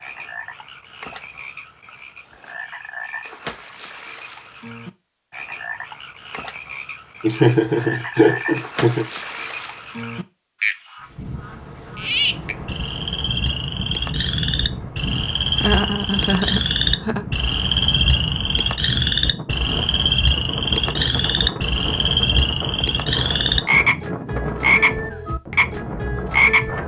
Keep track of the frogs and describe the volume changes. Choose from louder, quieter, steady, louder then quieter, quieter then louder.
louder.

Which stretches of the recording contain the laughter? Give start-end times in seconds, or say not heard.
7.2-9.1, 15.6-17.2.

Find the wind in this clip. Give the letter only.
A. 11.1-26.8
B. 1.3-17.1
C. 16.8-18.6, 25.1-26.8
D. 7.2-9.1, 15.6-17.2
A.